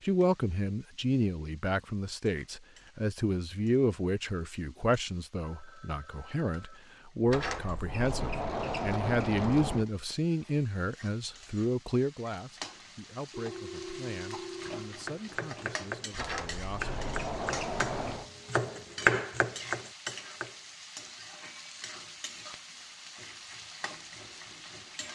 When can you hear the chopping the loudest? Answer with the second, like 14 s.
19 s.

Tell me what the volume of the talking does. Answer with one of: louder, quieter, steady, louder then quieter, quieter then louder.
quieter.